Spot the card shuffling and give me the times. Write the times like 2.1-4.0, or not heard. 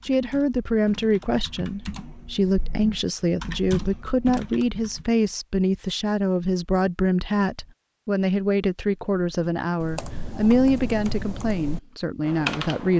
not heard.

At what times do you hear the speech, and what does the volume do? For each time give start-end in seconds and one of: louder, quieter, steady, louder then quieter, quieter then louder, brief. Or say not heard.
0.0-12.9 steady.